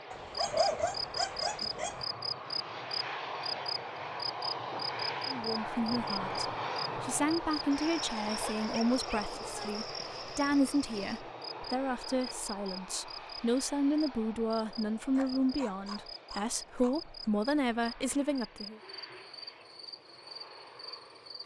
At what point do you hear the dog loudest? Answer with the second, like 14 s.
1 s.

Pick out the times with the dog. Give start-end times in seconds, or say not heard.
0.1-1.9, 8.4-9.8, 15.2-17.3.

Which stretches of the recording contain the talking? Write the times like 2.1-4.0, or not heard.
5.2-18.8.